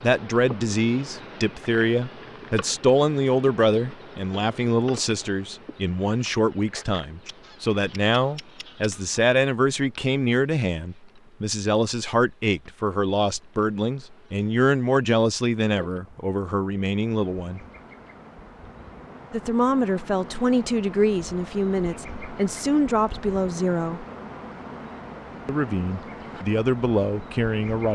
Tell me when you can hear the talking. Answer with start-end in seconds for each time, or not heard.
0.0-17.6, 19.3-24.1, 25.4-27.9.